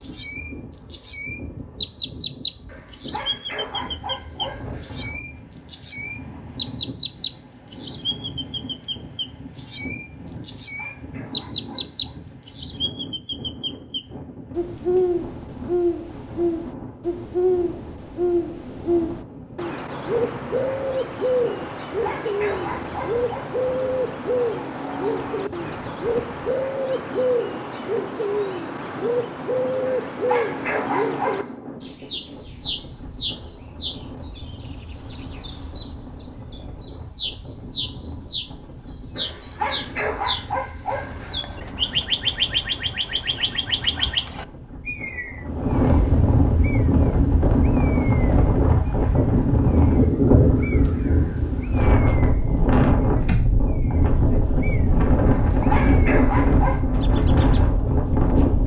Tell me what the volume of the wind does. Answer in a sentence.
The loudness of the wind goes up.